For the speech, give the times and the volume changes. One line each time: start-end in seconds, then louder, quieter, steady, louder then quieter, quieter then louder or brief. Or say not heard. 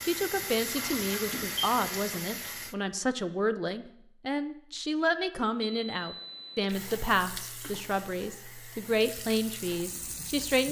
0.1-10.6 steady.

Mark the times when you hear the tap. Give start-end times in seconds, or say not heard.
0.0-2.8, 6.7-10.6.